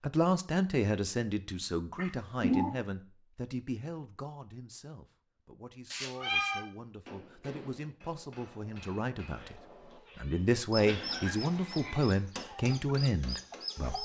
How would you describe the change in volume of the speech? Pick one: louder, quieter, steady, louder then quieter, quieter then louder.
quieter then louder.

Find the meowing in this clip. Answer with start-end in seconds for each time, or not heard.
1.9-2.7, 5.9-6.7, 9.3-11.3.